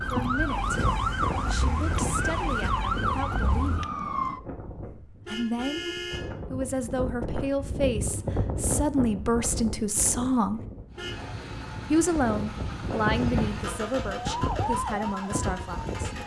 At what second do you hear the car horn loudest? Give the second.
6 s.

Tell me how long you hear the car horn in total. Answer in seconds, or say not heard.
2 s.